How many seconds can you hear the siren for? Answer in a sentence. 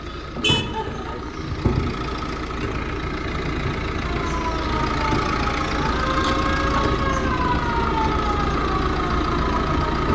You can hear the siren for 6 seconds altogether.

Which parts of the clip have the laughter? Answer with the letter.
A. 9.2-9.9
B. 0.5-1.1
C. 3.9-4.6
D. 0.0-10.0
B.